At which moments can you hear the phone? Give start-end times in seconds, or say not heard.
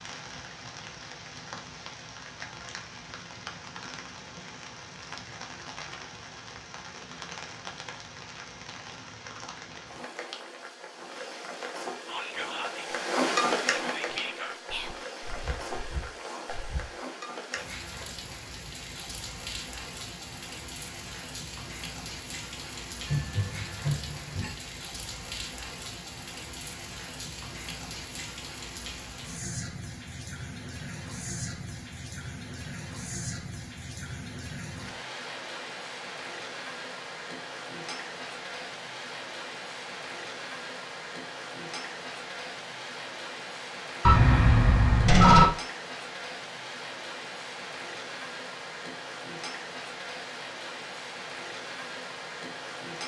23.1-24.6, 44.0-45.5.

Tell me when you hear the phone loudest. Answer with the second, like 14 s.
45 s.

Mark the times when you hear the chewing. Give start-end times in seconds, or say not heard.
not heard.